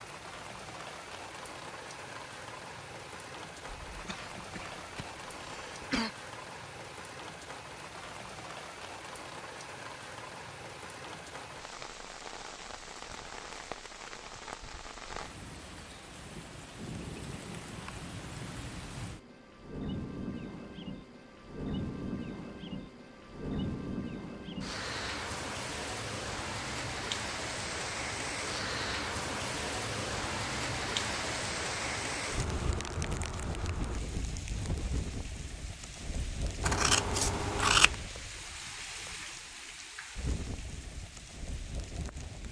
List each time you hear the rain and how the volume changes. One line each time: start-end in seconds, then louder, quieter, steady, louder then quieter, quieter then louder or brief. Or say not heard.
0.0-42.4 louder then quieter.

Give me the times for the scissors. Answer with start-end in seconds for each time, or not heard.
36.6-38.0.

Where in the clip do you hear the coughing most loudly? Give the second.
6 s.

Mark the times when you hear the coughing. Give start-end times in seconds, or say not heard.
3.9-6.1.